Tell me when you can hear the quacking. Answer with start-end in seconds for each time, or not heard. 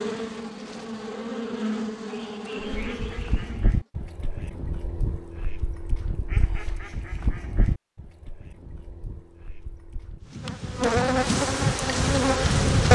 2.6-10.3.